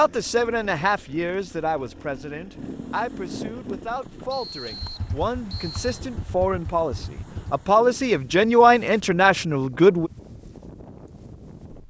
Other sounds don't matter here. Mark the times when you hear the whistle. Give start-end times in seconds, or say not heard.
4.3-5.9.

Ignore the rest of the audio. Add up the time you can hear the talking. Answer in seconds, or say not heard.
10 s.